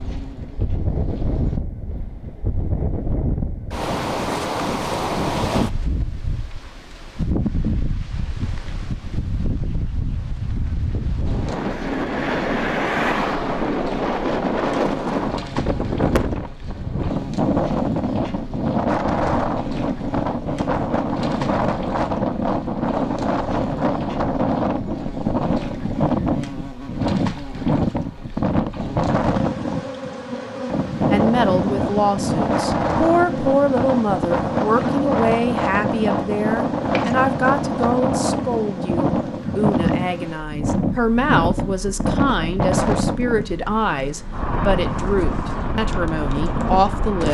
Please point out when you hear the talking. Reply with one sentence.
You can hear the talking from 31.1 to 47.2 s.